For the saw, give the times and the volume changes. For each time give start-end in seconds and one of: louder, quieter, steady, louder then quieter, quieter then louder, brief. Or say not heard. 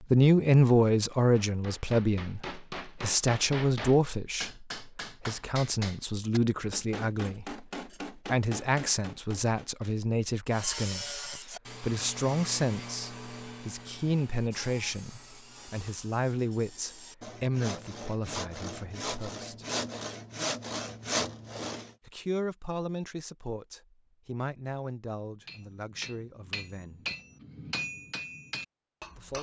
10.5-21.9 quieter then louder.